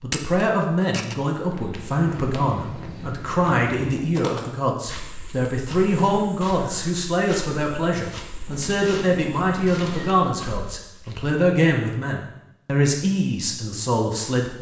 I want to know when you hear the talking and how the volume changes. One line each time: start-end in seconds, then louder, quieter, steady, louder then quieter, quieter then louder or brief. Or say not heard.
0.0-14.5 steady.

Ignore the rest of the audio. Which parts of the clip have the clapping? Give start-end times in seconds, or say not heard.
not heard.